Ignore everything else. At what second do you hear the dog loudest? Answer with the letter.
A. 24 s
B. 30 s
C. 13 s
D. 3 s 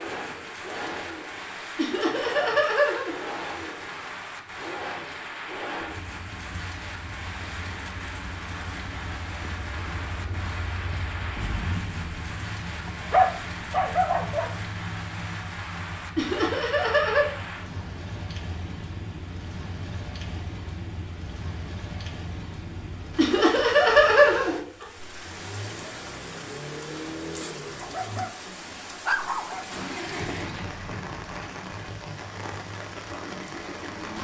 C.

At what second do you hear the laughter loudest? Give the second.
24 s.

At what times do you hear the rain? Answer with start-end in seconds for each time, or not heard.
0.0-34.2.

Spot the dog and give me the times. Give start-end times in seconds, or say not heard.
12.8-14.5, 27.8-29.8.